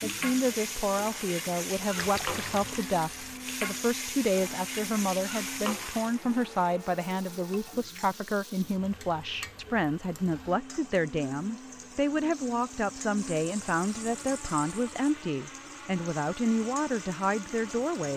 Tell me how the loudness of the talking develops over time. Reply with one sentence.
The volume of the talking stays about the same.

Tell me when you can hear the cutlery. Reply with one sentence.
You can't hear the cutlery here.